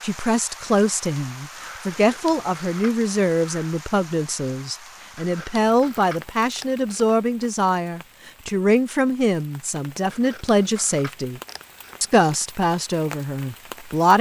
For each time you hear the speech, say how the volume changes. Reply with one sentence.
The speech can be heard from 0.0 to 11.4 s, at a steady volume; and briefly from 12.0 to 14.1 s.